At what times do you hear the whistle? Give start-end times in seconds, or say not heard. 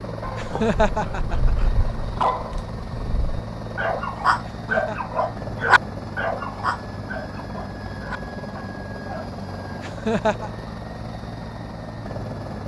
not heard.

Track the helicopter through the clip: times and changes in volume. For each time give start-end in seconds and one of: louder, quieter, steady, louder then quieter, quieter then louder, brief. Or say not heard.
0.0-12.6 steady.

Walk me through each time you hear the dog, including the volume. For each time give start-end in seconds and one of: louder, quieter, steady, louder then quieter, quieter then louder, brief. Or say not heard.
0.2-9.3 louder then quieter.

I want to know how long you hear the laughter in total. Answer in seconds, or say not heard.
3 s.